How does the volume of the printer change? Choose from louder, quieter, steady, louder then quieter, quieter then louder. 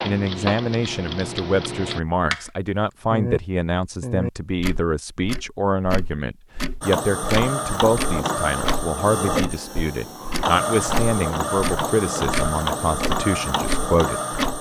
steady.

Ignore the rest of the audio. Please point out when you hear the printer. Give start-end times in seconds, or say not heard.
6.8-14.5.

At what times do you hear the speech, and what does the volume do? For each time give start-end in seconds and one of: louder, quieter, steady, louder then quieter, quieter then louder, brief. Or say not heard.
0.0-14.2 steady.